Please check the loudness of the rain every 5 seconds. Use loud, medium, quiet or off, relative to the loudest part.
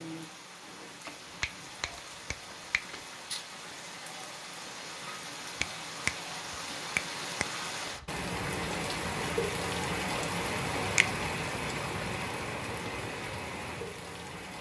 medium, loud, loud.